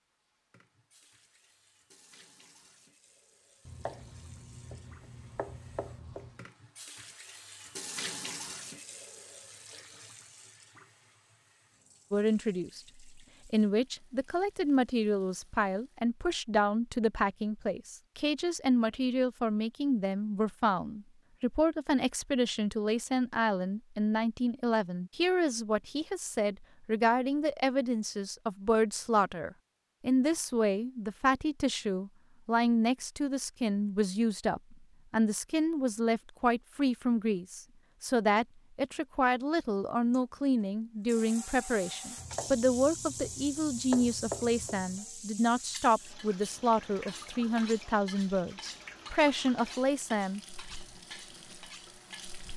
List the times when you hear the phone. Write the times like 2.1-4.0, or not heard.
not heard.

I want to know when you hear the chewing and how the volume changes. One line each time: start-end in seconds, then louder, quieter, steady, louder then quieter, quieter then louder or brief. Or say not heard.
not heard.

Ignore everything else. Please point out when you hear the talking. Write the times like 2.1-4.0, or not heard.
12.1-50.4.